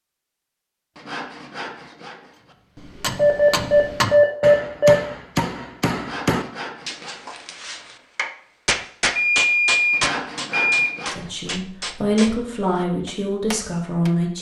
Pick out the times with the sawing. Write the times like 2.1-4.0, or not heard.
0.9-2.5, 6.0-7.5, 9.9-11.5.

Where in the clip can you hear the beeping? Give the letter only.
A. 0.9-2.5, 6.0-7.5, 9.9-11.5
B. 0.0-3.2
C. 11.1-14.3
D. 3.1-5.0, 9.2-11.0
D.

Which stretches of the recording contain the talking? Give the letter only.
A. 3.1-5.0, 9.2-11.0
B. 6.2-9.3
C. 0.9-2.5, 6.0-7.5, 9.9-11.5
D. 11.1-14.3
D.